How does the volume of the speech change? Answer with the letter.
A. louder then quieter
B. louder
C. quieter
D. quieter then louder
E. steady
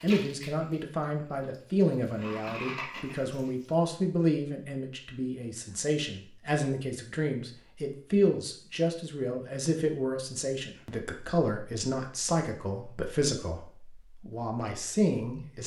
E.